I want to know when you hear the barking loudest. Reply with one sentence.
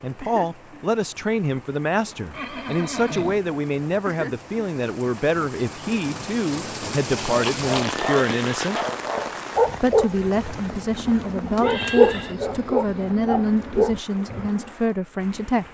The loudest moment of the barking is at 12 seconds.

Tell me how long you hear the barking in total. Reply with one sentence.
You can hear the barking for 7 seconds altogether.